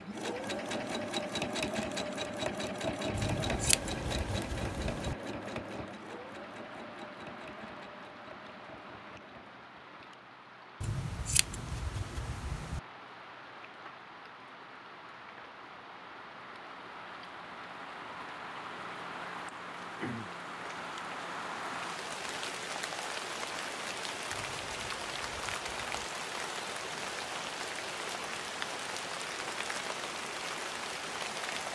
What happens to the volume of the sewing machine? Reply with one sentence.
The loudness of the sewing machine goes down.